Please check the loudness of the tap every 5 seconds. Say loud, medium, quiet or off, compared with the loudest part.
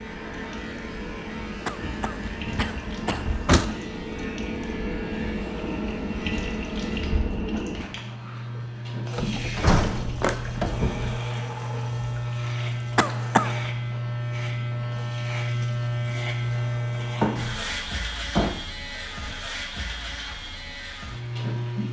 loud, loud, medium, quiet, quiet.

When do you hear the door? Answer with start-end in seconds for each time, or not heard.
2.0-3.7, 9.2-11.2, 17.1-18.6.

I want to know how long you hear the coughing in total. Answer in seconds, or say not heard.
2 s.